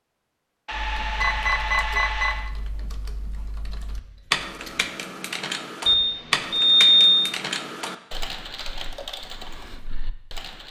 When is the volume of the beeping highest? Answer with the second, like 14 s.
7 s.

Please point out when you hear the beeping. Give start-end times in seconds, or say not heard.
0.7-2.5, 5.8-7.2.